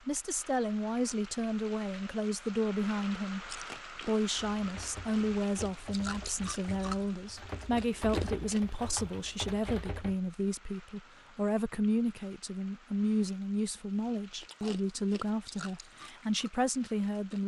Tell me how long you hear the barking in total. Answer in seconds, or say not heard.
not heard.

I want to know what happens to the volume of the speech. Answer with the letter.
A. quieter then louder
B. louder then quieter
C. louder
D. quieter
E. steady
E.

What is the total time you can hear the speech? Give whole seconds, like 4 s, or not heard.
17 s.